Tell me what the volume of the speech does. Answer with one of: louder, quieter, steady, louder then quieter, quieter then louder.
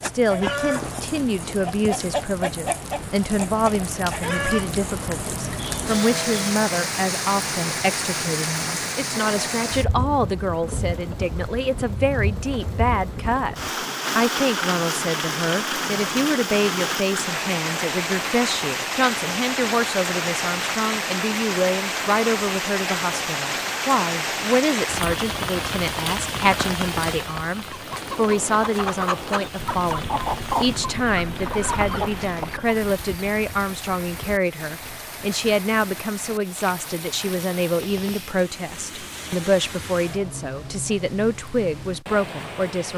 steady.